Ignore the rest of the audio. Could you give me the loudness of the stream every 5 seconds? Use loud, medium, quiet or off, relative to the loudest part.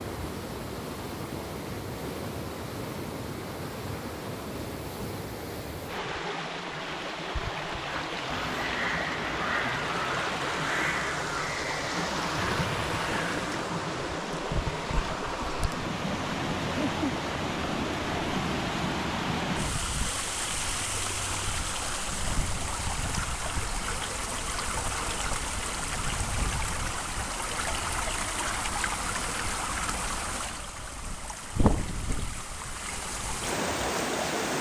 medium, loud, loud, loud, loud, loud, loud.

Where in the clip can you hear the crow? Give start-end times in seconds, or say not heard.
7.8-13.5.